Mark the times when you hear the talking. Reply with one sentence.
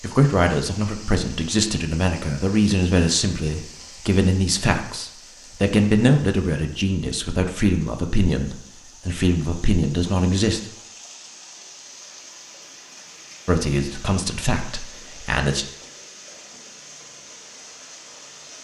You can hear the talking from 0.0 to 10.7 s and from 13.4 to 15.7 s.